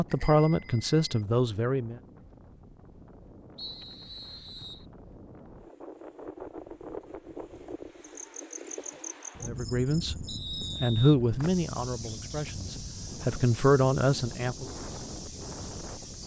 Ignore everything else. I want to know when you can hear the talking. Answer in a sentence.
The talking can be heard from 0.0 to 2.0 s, from 9.4 to 10.2 s and from 10.8 to 14.7 s.